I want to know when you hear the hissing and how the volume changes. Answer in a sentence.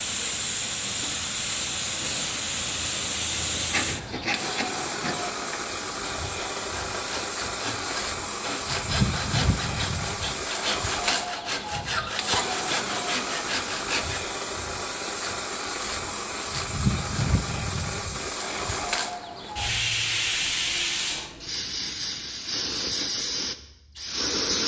You can hear the hissing from 0.0 to 24.6 s, at a steady volume.